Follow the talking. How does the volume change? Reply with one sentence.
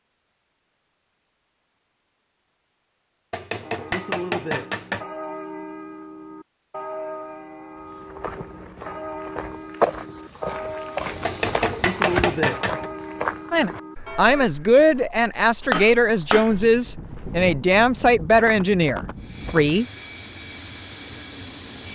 The volume of the talking stays about the same.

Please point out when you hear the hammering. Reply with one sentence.
The hammering can be heard from 3.3 to 5.0 s, from 11.2 to 12.8 s and from 15.7 to 16.6 s.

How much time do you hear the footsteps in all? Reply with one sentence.
The footsteps can be heard for 12 seconds in total.